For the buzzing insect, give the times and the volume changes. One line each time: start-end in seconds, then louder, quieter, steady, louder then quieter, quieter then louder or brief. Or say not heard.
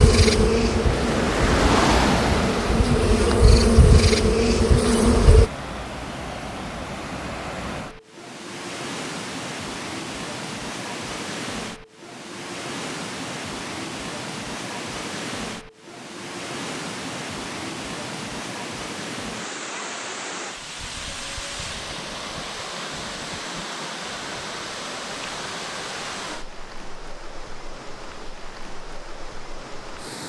0.0-5.5 quieter then louder.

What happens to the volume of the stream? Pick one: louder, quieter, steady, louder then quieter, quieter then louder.
quieter.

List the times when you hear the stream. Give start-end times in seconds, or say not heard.
0.2-30.2.